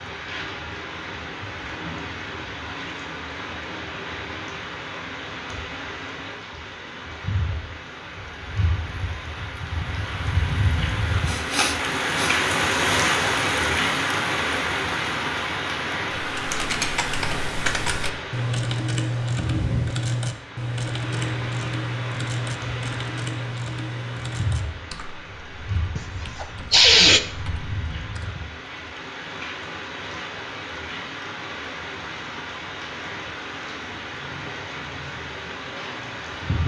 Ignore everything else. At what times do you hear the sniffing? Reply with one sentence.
The sniffing can be heard from 11.2 to 12.3 s and from 25.9 to 27.2 s.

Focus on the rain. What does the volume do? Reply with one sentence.
The loudness of the rain goes up, then down.